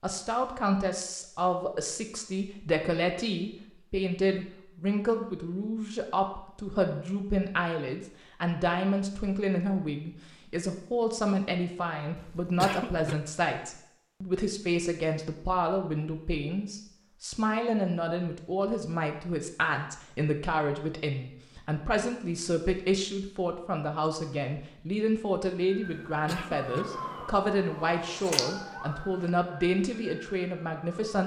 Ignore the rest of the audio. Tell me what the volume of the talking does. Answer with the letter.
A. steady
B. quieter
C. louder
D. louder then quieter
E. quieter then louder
A.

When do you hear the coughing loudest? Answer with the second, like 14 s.
13 s.